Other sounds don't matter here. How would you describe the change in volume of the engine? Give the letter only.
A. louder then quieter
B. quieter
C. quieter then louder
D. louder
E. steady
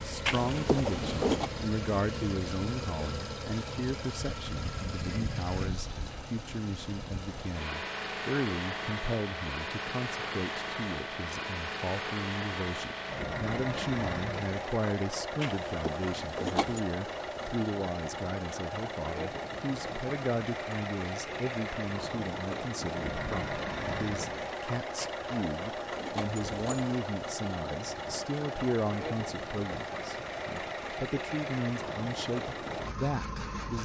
E.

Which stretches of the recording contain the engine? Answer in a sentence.
The engine can be heard from 0.0 to 33.8 s.